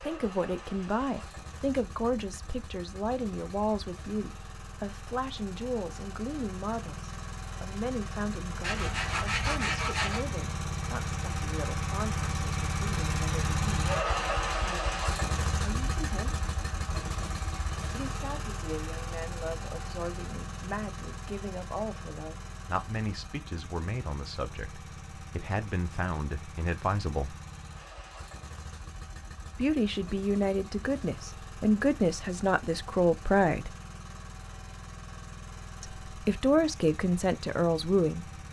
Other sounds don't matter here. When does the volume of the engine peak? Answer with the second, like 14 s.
14 s.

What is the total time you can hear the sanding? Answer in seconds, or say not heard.
2 s.